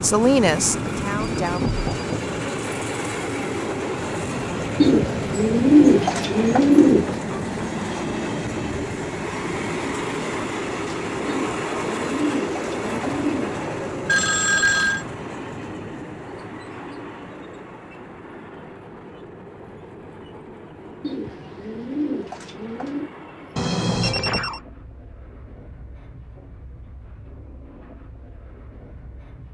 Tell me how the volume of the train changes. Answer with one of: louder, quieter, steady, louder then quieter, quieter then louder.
quieter.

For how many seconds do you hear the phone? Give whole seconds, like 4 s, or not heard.
3 s.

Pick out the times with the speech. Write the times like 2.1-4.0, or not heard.
0.0-1.6.